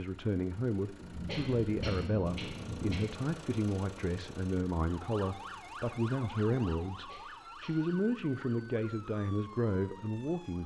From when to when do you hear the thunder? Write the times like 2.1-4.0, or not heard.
0.9-3.0.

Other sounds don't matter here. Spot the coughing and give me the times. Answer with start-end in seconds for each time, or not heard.
1.2-3.0, 7.0-7.8.